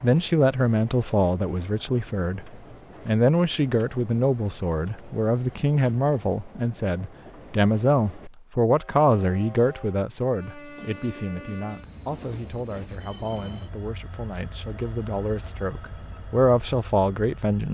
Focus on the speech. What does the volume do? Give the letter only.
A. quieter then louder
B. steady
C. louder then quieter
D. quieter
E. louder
A.